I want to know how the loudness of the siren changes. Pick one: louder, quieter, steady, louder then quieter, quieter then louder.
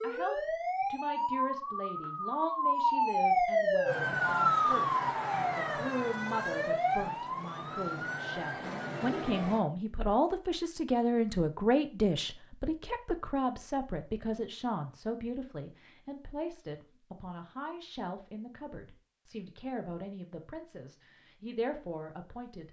louder then quieter.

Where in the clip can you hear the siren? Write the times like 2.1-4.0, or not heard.
0.0-9.6.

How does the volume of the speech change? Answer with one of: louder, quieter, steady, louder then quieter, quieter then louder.
louder then quieter.